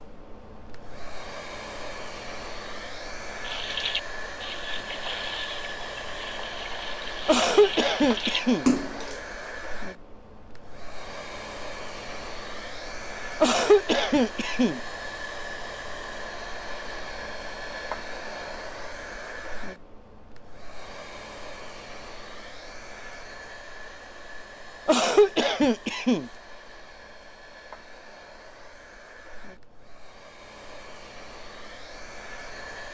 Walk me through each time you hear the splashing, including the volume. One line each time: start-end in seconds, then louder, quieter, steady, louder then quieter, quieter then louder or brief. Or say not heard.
3.4-9.2 quieter then louder.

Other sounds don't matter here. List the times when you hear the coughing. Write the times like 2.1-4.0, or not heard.
7.2-8.7, 13.4-14.8, 24.9-26.3.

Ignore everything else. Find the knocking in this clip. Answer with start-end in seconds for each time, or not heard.
not heard.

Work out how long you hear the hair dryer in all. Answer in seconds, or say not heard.
33 s.